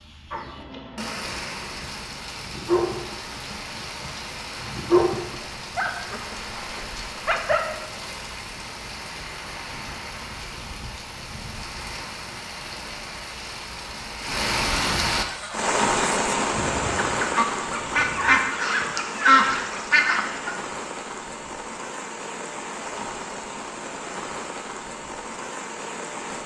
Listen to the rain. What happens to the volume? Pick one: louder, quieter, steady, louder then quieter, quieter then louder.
louder then quieter.